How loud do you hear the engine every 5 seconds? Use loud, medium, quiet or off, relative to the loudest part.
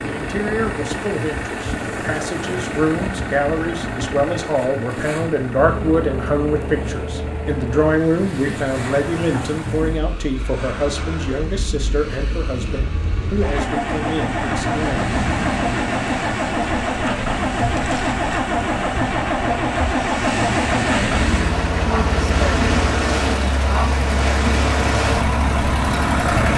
medium, medium, medium, loud, loud, loud.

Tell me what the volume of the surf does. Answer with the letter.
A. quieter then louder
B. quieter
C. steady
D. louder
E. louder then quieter
D.